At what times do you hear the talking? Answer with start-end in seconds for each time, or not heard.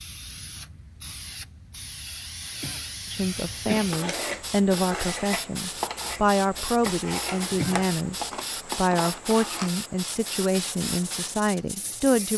3.1-12.3.